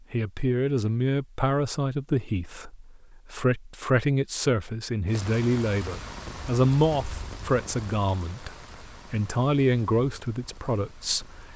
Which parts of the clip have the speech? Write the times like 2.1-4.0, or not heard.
0.1-11.5.